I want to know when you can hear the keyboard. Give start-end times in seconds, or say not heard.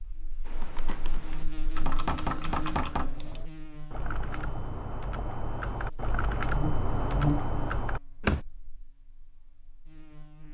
0.5-8.4.